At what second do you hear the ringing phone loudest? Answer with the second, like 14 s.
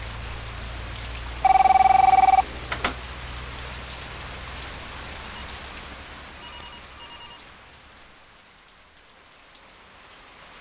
2 s.